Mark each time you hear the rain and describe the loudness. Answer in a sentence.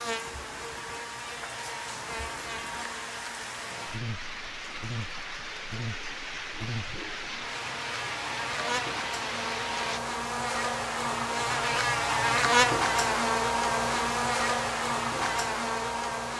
You can hear the rain from 0.0 to 10.0 s, getting louder.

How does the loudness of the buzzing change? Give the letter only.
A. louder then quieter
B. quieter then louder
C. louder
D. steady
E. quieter
C.